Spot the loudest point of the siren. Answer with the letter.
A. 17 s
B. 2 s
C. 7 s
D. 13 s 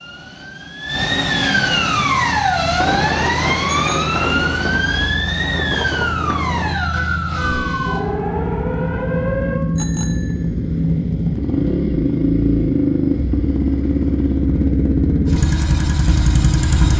B.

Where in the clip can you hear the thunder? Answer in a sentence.
You can hear the thunder from 2.8 to 6.8 s.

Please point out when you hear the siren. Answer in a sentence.
The siren can be heard from 0.0 to 9.6 s.